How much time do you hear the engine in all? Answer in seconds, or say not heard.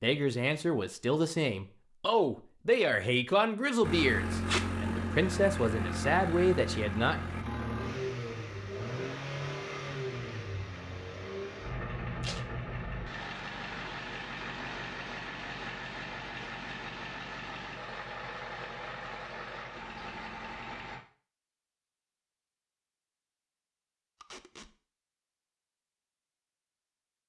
17 s.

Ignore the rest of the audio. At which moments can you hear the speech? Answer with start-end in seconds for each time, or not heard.
0.0-7.2.